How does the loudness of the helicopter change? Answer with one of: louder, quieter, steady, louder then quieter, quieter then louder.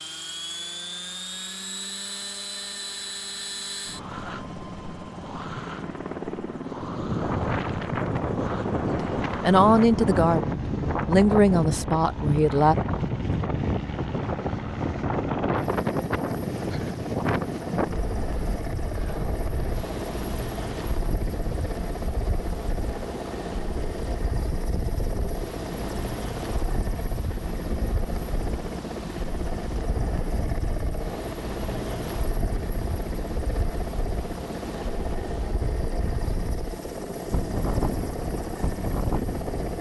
steady.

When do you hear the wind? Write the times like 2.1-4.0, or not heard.
6.7-39.7.